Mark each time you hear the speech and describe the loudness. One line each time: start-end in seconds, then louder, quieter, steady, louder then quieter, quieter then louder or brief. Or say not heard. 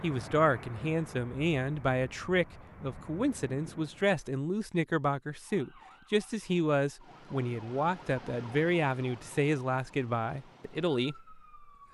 0.0-11.9 steady.